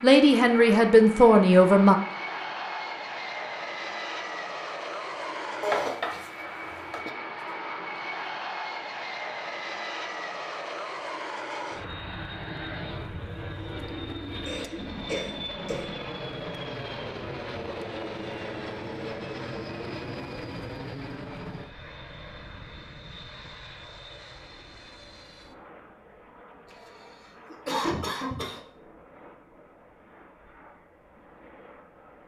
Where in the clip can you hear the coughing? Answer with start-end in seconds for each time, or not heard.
5.6-7.1, 14.4-16.0, 26.6-28.6.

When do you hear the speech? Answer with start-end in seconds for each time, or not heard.
0.0-1.9.